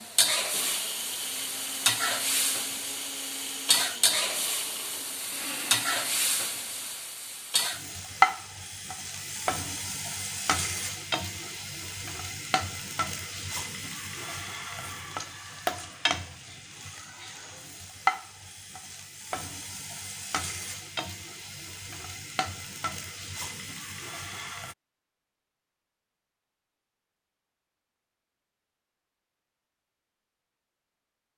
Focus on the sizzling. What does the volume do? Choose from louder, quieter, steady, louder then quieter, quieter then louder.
quieter.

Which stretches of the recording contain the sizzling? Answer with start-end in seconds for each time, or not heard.
0.0-24.8.